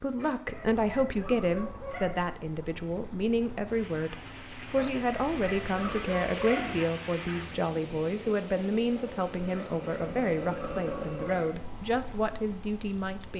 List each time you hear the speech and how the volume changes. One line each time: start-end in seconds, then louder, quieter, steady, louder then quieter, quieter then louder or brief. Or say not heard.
0.0-13.3 steady.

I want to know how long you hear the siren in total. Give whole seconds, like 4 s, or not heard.
not heard.